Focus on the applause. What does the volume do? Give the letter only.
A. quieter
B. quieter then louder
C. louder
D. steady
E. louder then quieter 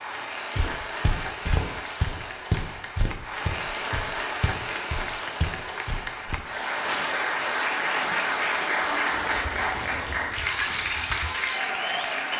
C.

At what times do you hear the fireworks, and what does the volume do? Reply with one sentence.
You can't hear the fireworks here.